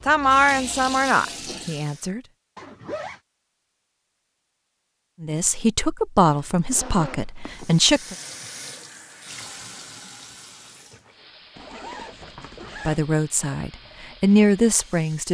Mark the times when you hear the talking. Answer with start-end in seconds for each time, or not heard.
0.1-2.2, 5.2-8.2, 12.8-15.2.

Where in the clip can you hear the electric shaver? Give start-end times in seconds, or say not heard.
not heard.